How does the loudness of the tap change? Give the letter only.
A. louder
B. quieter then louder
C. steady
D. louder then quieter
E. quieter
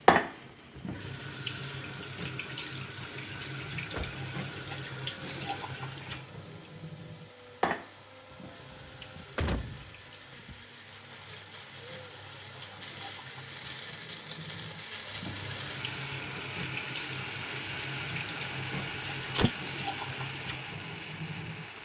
B.